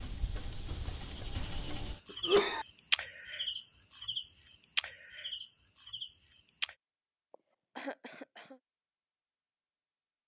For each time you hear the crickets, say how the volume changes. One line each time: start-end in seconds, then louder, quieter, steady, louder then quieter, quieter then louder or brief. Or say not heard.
0.0-6.8 louder then quieter.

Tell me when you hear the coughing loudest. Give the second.
2 s.